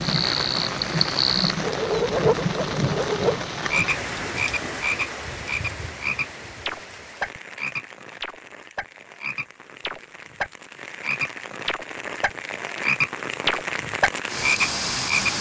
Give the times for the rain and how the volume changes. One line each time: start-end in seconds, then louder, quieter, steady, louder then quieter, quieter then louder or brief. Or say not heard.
0.0-15.3 quieter then louder.